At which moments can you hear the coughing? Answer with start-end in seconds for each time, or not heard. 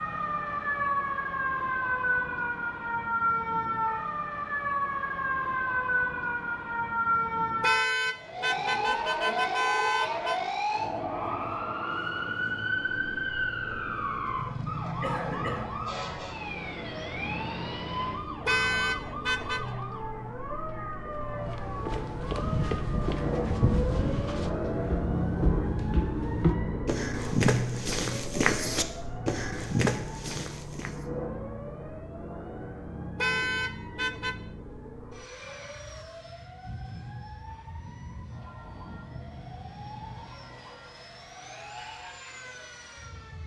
15.0-15.8.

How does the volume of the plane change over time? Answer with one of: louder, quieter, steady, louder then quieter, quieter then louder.
louder then quieter.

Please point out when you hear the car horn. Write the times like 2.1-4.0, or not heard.
7.6-10.4, 18.4-19.7, 33.1-34.4.